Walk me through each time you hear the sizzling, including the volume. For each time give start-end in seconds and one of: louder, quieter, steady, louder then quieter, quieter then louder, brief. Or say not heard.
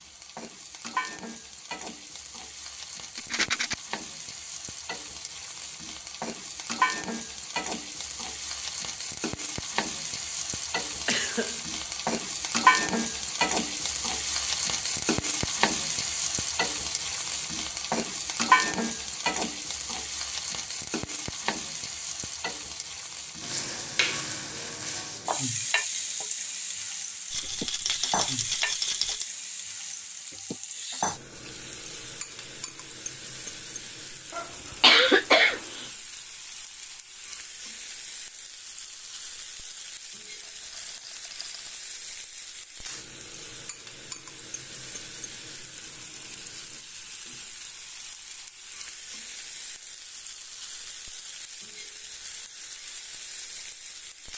0.0-54.3 louder then quieter.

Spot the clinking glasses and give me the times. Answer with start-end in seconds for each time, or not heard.
not heard.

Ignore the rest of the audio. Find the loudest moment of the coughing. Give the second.
35 s.